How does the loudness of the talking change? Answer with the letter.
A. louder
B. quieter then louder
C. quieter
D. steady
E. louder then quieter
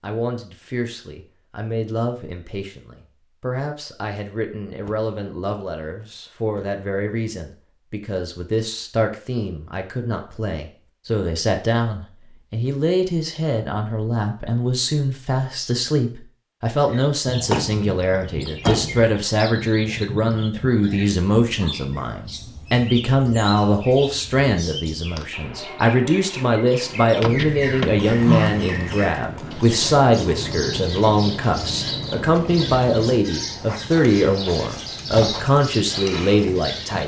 A.